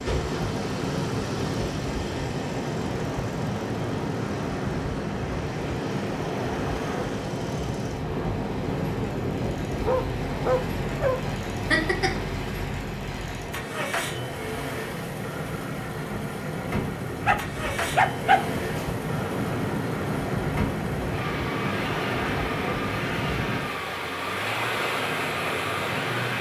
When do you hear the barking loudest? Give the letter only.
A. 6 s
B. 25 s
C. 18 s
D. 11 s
C.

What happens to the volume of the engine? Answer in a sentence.
The volume of the engine goes up.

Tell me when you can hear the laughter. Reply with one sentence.
You can hear the laughter from 11.7 to 12.2 s.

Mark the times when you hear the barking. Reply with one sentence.
The barking can be heard from 9.8 to 11.2 s and from 17.2 to 18.9 s.